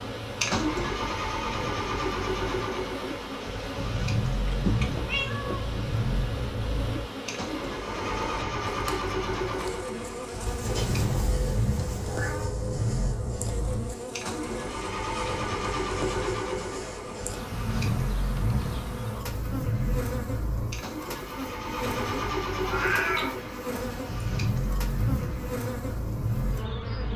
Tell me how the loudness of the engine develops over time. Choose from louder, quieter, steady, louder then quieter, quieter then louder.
steady.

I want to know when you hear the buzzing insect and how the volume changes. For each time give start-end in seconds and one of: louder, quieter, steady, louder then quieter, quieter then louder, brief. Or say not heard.
0.0-27.1 steady.